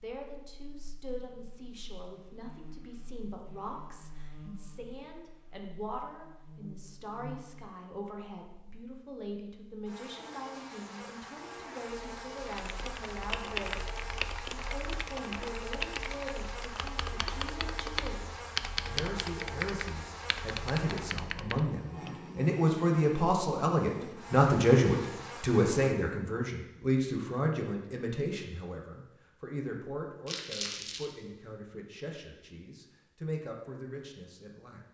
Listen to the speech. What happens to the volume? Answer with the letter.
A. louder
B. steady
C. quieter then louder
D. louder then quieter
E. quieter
D.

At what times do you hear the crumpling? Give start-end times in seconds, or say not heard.
30.2-31.1.